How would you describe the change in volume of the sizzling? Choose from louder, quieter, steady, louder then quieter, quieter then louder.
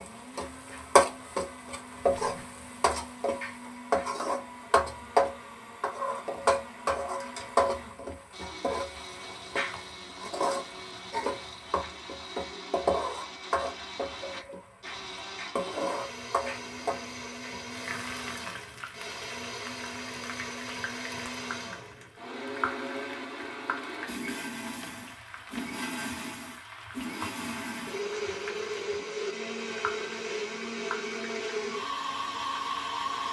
quieter.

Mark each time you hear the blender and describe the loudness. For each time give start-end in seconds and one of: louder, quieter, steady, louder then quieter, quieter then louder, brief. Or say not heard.
0.0-33.2 louder.